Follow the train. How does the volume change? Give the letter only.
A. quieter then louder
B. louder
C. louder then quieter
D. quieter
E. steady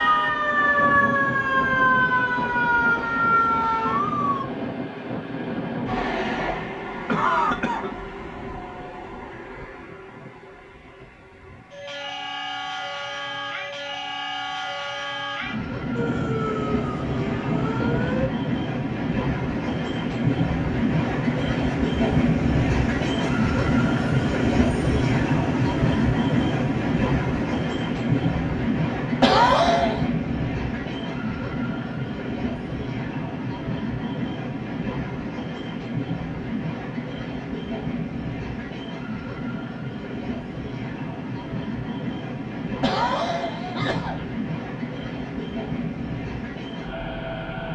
C.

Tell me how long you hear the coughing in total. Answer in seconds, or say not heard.
3 s.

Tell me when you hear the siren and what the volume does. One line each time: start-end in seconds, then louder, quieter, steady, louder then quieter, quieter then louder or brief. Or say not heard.
0.0-4.5 steady
15.9-18.3 brief.